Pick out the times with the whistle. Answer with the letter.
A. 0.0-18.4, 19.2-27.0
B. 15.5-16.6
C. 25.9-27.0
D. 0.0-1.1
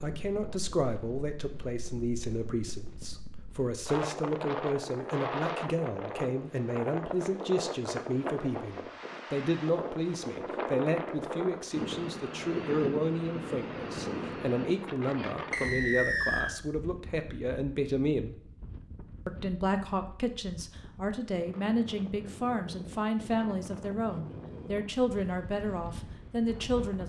B.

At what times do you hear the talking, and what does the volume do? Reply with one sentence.
The talking can be heard from 0.0 to 18.4 s, at a steady volume; and from 19.2 to 27.0 s, at a steady volume.